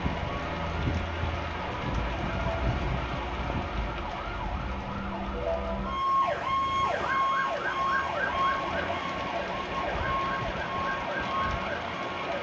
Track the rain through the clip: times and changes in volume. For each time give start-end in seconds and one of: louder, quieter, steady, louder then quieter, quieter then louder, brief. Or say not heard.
0.0-12.3 quieter then louder.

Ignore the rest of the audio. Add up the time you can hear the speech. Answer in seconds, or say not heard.
not heard.